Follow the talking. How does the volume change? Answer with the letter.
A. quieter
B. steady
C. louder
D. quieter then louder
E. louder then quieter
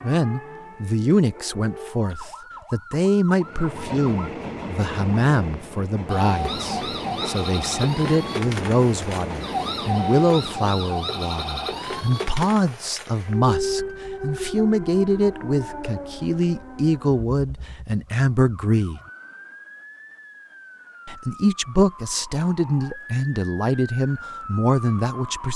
B.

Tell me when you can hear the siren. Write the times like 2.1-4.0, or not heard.
0.0-4.3, 6.0-25.5.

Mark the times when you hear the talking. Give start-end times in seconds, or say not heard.
0.0-19.0, 21.1-25.5.